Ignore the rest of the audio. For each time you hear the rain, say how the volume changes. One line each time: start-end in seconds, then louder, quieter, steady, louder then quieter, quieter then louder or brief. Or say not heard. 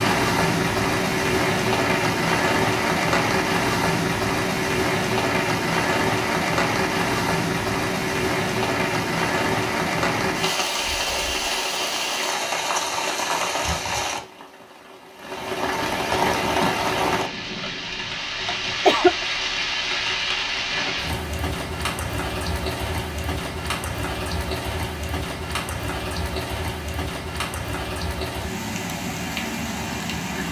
0.0-30.4 quieter.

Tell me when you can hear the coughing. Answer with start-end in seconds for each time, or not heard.
18.4-19.2.